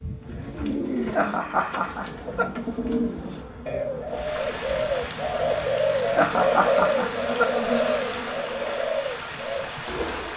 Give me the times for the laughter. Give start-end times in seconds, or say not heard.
0.6-2.5, 5.6-7.5.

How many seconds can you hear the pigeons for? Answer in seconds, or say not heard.
10 s.